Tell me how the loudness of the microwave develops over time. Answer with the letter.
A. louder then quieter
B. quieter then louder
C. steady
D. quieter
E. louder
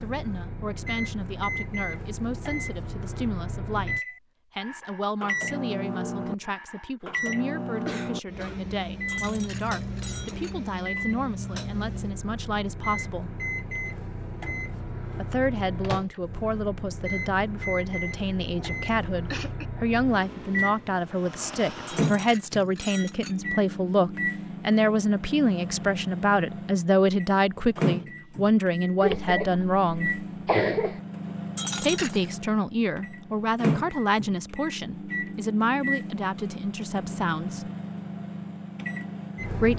C.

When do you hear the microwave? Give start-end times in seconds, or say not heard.
0.0-39.7.